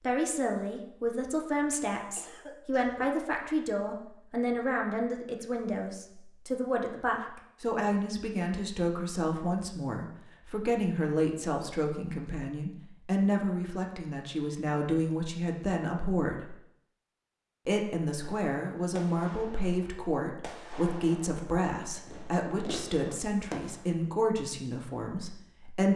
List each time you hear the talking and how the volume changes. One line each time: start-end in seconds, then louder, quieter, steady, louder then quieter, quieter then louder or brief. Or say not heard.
0.0-16.6 steady
17.6-25.9 steady.